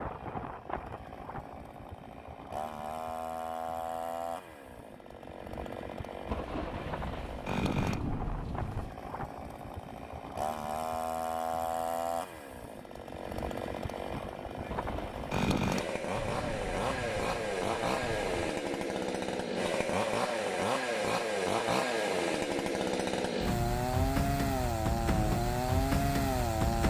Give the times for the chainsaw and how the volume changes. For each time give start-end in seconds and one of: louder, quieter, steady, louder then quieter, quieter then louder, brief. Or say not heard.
0.0-26.8 louder.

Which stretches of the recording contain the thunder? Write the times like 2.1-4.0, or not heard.
6.2-8.9, 14.7-18.4.